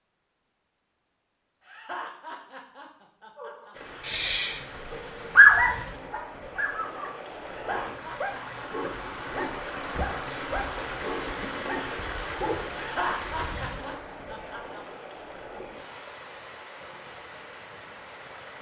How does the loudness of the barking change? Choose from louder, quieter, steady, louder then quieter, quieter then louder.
quieter.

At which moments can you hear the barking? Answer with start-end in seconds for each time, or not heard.
3.4-12.8.